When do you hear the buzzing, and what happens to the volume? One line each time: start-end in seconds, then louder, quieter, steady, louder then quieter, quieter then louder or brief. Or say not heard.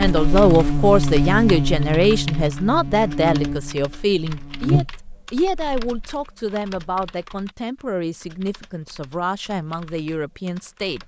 0.0-5.8 quieter then louder.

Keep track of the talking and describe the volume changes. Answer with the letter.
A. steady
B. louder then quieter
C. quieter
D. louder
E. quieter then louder
C.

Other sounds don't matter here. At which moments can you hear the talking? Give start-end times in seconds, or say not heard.
0.0-11.0.